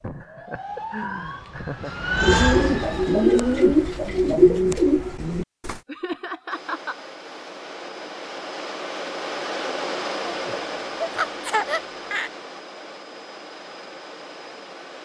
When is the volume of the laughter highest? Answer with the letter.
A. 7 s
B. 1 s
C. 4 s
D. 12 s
D.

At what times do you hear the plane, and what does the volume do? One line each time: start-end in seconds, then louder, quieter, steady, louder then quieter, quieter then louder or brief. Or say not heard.
6.5-15.0 louder then quieter.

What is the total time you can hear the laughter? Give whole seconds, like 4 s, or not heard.
5 s.